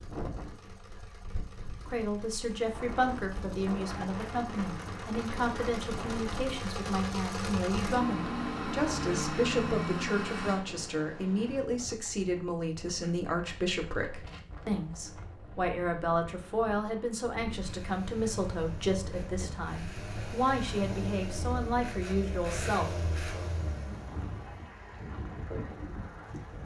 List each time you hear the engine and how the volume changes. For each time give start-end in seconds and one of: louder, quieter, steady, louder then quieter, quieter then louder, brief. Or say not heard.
0.0-10.6 louder
17.6-26.6 louder then quieter.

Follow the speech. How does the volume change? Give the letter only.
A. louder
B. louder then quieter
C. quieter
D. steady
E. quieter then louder
D.